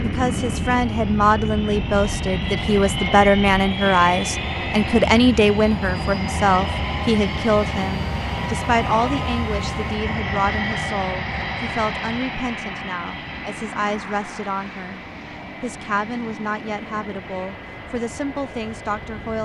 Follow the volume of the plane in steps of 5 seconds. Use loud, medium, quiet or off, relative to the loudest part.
loud, loud, loud, medium.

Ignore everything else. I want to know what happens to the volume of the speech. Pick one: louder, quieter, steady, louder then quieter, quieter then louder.
quieter.